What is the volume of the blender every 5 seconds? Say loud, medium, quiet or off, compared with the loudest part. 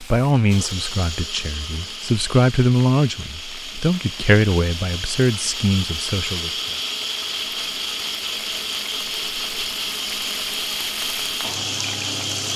medium, loud, loud.